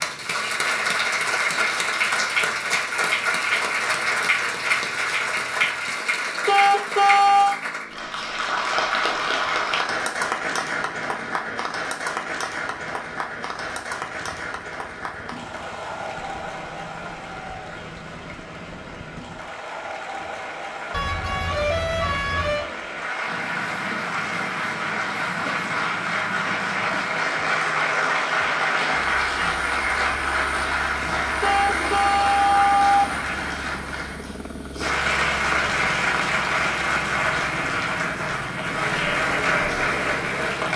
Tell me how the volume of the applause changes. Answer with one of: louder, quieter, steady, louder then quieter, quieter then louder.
quieter then louder.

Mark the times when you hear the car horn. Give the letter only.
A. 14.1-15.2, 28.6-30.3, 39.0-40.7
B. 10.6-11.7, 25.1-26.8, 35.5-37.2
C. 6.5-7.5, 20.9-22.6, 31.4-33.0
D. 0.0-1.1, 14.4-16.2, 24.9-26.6
C.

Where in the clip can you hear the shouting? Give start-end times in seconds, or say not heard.
not heard.